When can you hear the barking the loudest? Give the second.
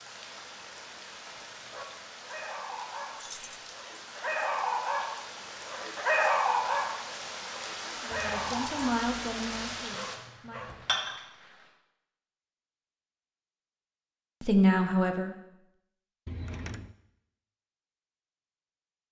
6 s.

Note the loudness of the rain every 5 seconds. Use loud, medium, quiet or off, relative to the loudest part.
medium, loud, loud, off.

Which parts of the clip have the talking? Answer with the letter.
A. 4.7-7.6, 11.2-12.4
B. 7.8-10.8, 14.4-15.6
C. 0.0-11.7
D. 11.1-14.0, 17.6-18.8
B.